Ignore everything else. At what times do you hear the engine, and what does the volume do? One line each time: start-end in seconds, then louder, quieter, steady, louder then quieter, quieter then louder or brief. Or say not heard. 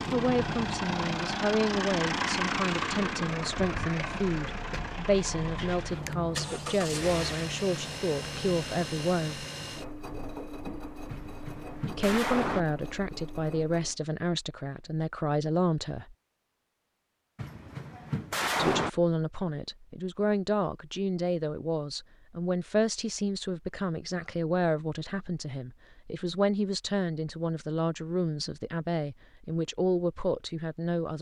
0.0-13.9 quieter.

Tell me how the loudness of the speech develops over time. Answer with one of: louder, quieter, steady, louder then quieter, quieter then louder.
steady.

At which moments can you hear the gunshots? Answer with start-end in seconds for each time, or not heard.
11.1-12.7, 17.4-18.9.